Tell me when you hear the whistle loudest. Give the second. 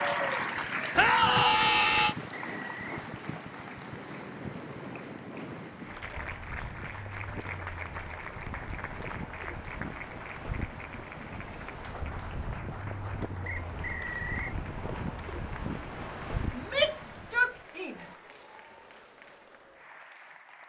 14 s.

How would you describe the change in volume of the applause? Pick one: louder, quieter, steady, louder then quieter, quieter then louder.
quieter.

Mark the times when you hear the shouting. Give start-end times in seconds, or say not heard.
0.9-2.1, 16.6-18.1.